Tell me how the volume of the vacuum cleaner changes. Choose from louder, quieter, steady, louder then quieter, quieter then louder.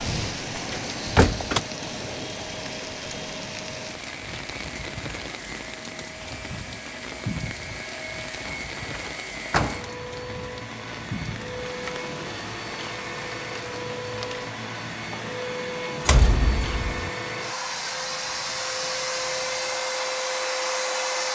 louder.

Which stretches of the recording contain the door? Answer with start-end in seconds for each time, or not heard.
0.7-1.6, 8.4-9.9, 16.1-17.1.